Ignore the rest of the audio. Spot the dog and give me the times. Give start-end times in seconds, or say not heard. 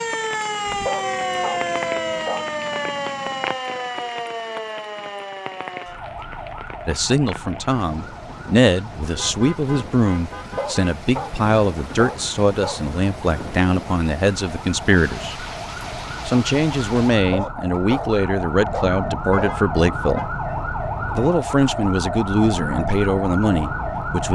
0.7-2.5, 10.3-12.8, 17.1-19.6.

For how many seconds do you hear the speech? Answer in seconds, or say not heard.
16 s.